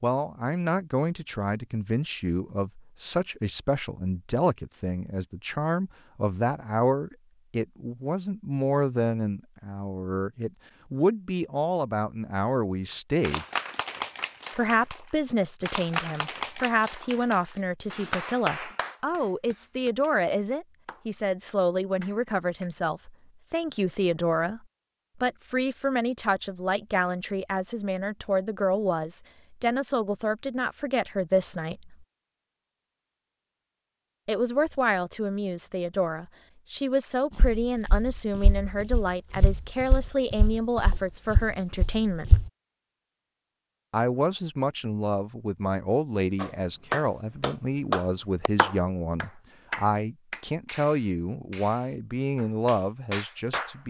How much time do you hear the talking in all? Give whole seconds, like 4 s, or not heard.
49 s.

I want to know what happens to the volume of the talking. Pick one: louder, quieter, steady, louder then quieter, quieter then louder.
steady.